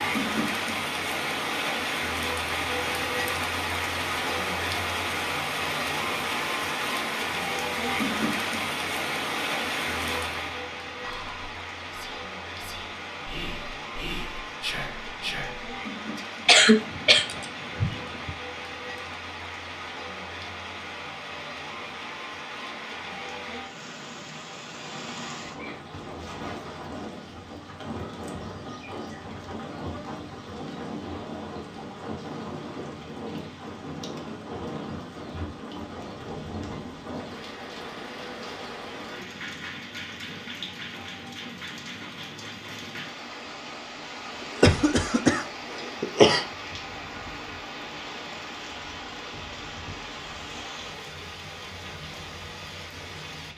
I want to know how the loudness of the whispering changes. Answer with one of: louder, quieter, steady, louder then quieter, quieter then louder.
louder.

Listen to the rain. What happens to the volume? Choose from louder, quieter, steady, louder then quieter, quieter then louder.
quieter.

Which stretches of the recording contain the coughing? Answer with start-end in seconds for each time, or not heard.
16.4-18.3, 44.6-46.5.